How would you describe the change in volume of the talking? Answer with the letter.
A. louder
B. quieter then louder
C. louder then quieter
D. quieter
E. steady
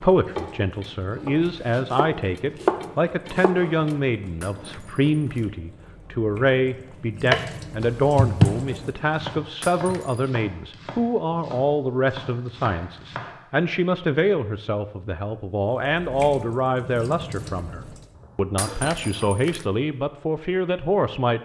E.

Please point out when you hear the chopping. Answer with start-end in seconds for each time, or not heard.
0.2-4.0, 7.3-13.6.